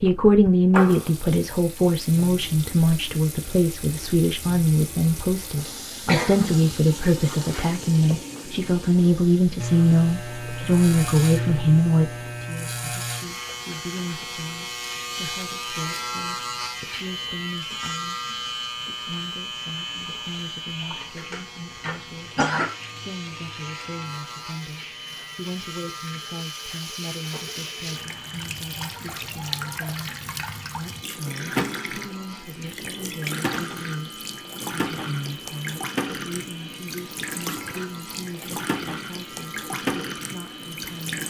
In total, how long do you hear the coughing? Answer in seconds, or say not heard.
2 s.